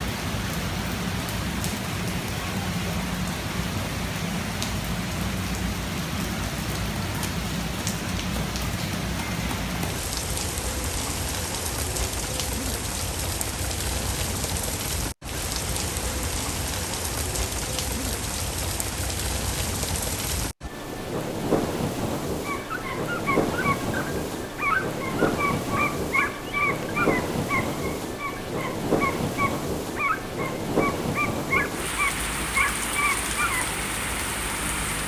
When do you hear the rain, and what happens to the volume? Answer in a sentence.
The rain can be heard from 0.0 to 35.0 s, at a steady volume.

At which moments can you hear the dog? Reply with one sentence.
You can hear the dog from 22.4 to 33.7 s.